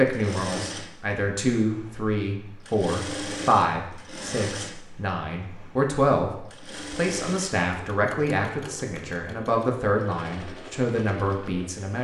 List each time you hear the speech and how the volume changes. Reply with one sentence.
You can hear the speech from 0.0 to 11.9 s, at a steady volume.